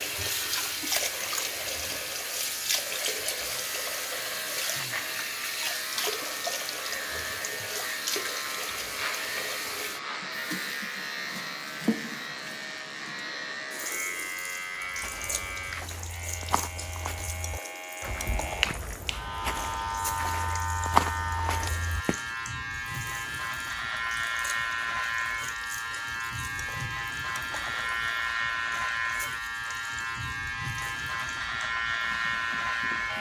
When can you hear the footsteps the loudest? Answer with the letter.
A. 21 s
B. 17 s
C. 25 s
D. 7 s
A.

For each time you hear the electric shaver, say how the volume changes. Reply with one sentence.
You can hear the electric shaver from 0.0 to 33.1 s, getting louder.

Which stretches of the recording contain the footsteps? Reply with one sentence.
You can hear the footsteps from 14.8 to 22.2 s.